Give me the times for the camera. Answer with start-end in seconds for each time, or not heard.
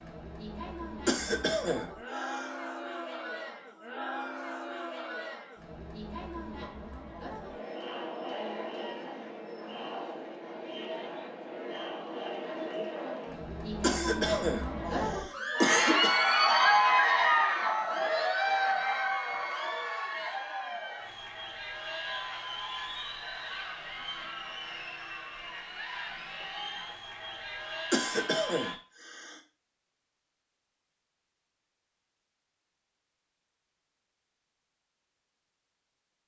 not heard.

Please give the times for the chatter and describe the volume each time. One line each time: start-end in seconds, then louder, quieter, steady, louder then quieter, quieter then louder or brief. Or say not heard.
0.0-28.8 louder then quieter.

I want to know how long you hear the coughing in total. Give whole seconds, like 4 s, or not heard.
5 s.